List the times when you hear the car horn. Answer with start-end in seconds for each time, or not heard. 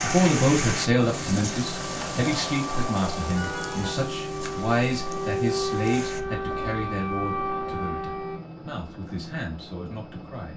3.2-4.0.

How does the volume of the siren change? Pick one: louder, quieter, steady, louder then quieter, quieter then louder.
louder.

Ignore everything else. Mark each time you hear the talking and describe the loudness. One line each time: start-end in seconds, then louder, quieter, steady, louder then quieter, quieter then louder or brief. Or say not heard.
0.0-10.5 quieter.